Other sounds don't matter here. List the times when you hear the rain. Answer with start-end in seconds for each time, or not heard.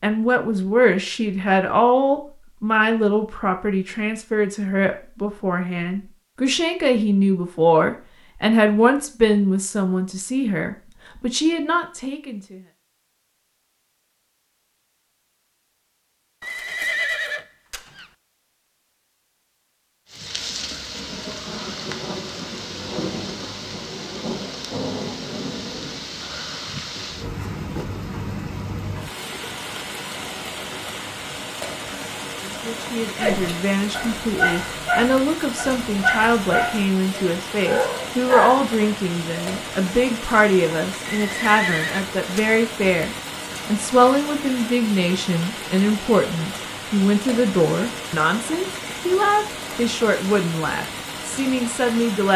20.1-52.3.